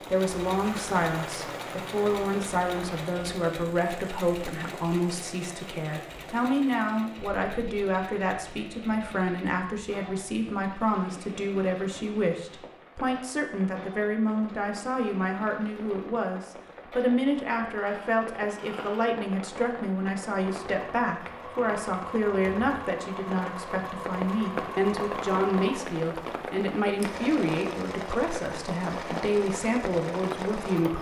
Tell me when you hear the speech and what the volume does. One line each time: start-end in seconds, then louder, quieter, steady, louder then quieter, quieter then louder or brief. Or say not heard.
0.1-30.9 steady.